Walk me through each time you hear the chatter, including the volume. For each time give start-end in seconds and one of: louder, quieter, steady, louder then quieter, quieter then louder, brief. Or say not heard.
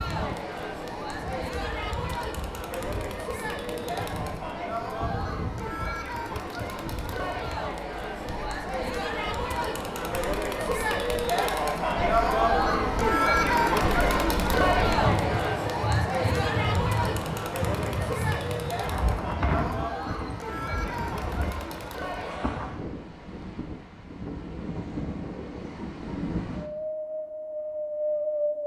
0.0-22.8 louder then quieter.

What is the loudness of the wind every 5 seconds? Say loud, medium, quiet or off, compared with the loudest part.
medium, medium, medium, loud, medium, loud.